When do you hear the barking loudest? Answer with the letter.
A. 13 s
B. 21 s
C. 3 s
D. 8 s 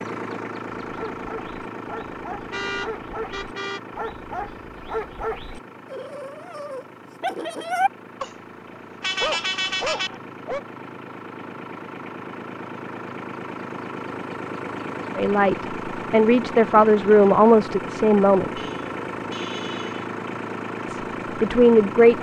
D.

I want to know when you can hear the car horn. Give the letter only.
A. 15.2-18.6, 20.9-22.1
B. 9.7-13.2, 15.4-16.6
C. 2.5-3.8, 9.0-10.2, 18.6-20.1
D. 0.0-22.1
C.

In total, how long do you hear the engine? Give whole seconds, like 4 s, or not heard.
22 s.